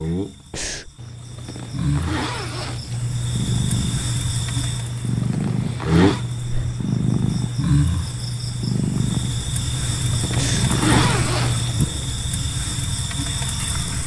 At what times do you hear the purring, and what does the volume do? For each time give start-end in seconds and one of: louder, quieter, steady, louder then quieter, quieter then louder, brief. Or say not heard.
2.9-12.1 steady.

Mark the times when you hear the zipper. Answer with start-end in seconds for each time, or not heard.
0.9-3.0, 4.8-6.2, 9.7-11.8.